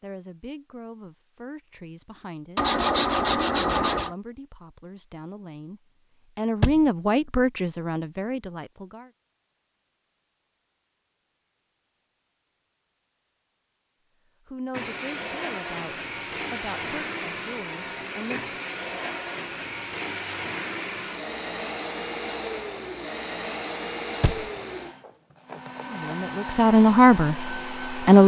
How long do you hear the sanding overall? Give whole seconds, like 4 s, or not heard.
3 s.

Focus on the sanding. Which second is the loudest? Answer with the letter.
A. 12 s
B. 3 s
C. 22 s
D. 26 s
B.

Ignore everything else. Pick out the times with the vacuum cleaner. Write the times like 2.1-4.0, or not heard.
14.7-28.2.